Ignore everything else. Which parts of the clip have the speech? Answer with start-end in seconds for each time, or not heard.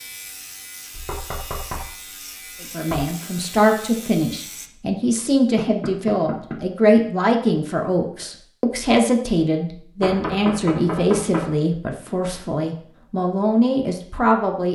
2.6-14.7.